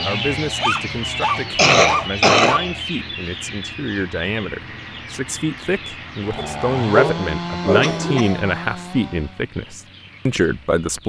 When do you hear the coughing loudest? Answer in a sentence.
The volume of the coughing peaks at 2 seconds.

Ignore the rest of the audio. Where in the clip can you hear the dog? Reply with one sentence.
The dog can be heard from 0.6 to 2.6 s and from 6.3 to 8.2 s.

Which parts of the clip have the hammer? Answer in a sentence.
The hammer can't be heard in this clip.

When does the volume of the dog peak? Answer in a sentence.
The loudest moment of the dog is at 7 seconds.